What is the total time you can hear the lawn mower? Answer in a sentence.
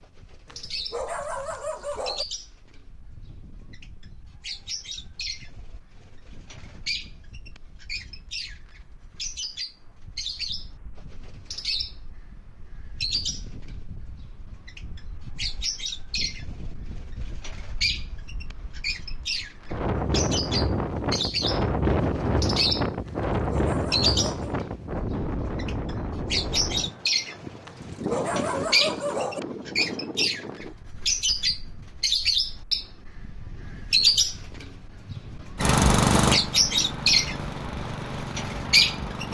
The lawn mower can be heard for 4 seconds in total.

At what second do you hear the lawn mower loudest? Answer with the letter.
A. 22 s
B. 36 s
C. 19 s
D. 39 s
B.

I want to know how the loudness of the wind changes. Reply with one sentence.
The volume of the wind goes up, then down.